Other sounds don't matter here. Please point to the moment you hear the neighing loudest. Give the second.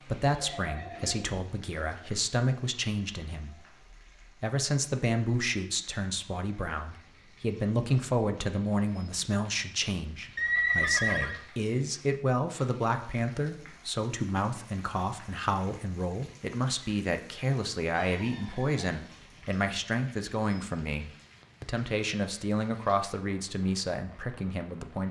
11 s.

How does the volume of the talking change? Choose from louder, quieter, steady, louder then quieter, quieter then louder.
steady.